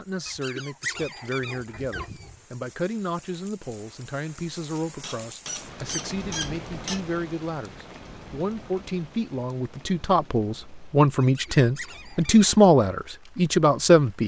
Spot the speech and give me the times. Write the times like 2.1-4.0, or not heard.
0.0-14.2.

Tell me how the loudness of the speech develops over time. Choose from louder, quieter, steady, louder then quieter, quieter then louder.
louder.